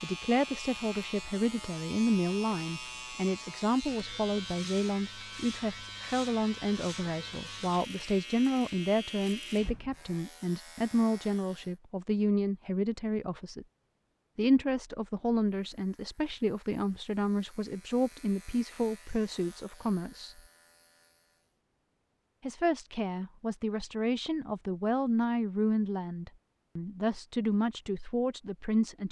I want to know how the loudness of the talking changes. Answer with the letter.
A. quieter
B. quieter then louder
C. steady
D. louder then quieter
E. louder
C.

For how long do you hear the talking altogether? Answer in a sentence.
You can hear the talking for 26 seconds altogether.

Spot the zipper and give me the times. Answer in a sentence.
The zipper can't be heard in this clip.